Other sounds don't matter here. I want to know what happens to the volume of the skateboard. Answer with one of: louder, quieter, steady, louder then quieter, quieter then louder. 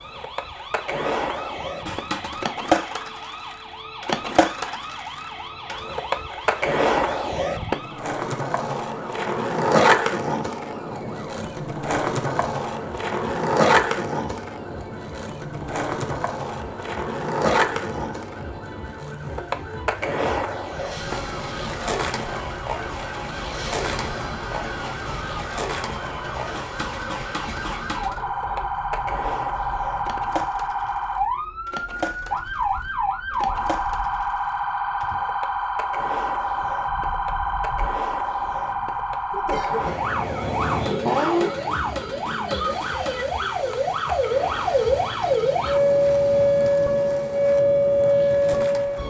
quieter.